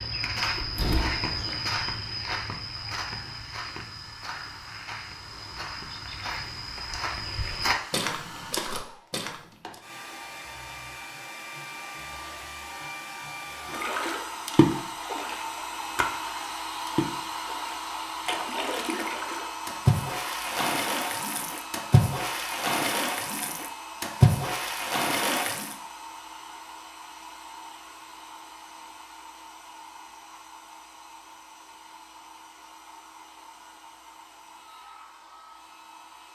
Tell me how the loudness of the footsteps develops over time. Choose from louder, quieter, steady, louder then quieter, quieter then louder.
quieter then louder.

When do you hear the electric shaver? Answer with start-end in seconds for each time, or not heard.
not heard.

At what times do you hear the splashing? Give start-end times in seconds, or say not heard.
13.7-25.8.